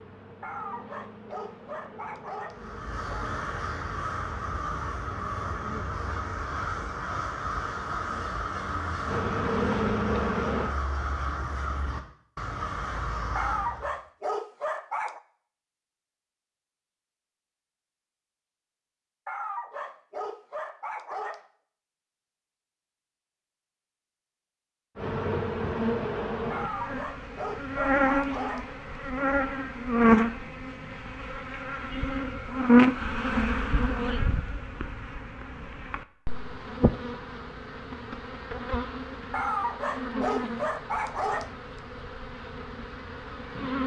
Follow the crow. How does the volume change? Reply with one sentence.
The volume of the crow stays about the same.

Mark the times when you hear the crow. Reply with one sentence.
The crow can be heard from 2.5 to 14.0 s.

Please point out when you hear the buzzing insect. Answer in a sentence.
You can hear the buzzing insect from 0.0 to 10.8 s and from 24.9 to 43.8 s.